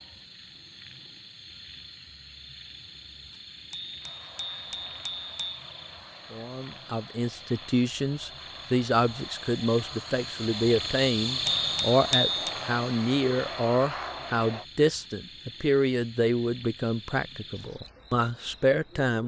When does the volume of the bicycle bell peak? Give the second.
12 s.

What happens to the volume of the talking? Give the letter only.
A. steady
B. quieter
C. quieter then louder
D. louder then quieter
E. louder
A.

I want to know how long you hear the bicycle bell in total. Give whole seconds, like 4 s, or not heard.
3 s.